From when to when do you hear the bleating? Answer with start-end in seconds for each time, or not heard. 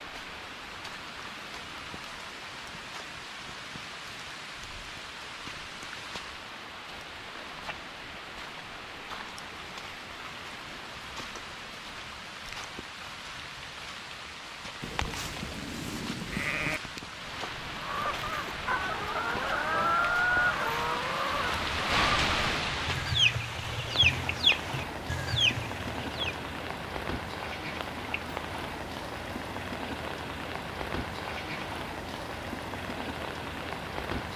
14.8-16.8.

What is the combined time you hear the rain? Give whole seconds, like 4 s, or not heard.
34 s.